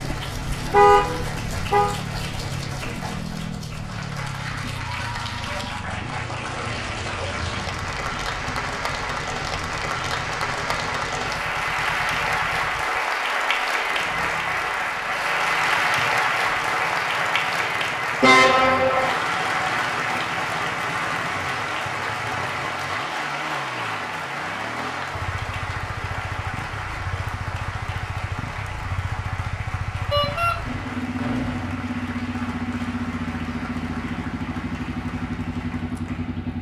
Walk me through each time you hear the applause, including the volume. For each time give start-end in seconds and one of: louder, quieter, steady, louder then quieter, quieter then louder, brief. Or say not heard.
0.0-36.5 louder then quieter.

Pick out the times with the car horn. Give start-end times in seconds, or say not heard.
0.7-1.9, 18.2-19.1, 30.1-30.6.